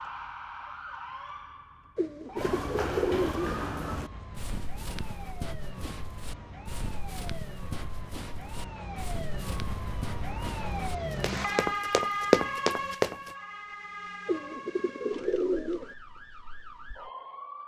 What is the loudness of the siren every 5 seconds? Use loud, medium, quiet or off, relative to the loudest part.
medium, medium, loud, medium.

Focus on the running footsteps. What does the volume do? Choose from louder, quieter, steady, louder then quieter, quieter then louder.
quieter then louder.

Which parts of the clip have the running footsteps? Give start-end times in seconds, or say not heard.
2.4-13.3.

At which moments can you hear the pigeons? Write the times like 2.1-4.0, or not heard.
1.9-3.6, 14.2-15.9.